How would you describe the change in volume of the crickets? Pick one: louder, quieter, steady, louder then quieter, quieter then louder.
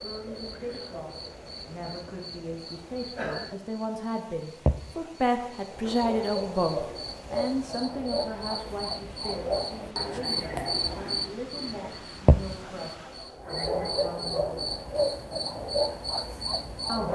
louder.